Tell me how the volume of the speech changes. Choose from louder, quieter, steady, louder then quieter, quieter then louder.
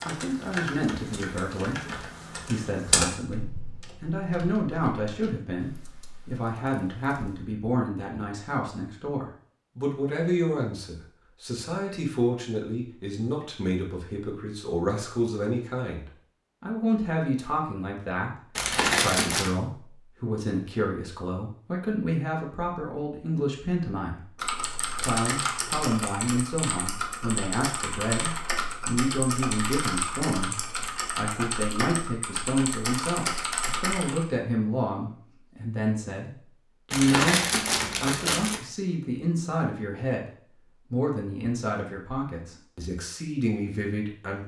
steady.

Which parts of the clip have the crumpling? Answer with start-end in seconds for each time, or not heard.
18.6-19.6, 36.9-38.6.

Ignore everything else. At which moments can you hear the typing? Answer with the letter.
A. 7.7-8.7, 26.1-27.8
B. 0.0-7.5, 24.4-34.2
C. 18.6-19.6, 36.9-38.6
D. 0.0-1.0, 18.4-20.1
B.